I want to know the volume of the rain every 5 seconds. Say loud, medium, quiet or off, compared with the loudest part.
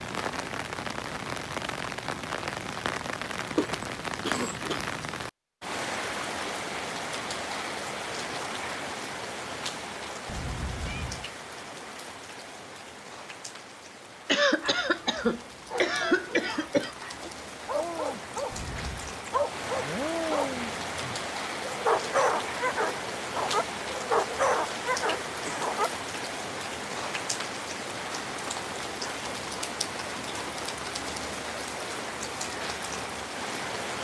loud, loud, medium, medium, loud, loud, loud.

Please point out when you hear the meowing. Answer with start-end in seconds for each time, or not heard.
10.2-11.3, 18.5-19.1.